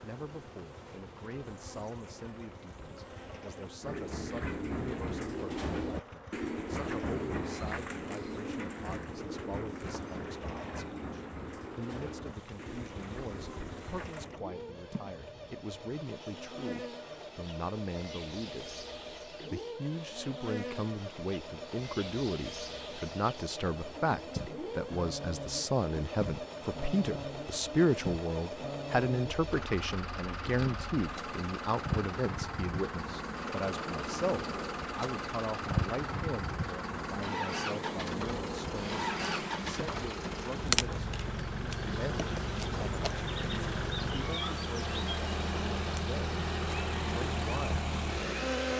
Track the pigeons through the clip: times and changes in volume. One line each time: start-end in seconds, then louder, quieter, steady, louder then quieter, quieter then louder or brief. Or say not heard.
3.8-14.3 quieter.